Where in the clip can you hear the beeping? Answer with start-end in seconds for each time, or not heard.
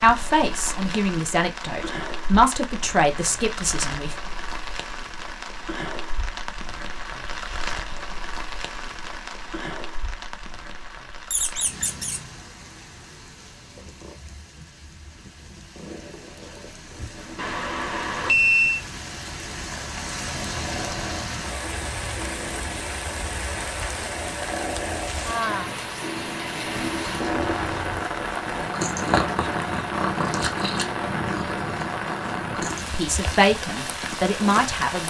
17.4-18.8.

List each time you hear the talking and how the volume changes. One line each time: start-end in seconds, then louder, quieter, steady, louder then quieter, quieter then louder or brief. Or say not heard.
0.0-4.2 louder then quieter
32.9-35.0 brief.